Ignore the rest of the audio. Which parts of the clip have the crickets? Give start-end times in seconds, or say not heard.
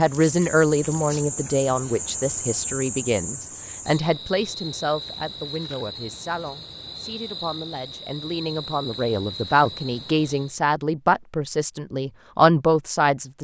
0.0-10.6.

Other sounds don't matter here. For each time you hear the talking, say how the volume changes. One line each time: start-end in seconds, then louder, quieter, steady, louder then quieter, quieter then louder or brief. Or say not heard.
0.0-13.3 quieter then louder.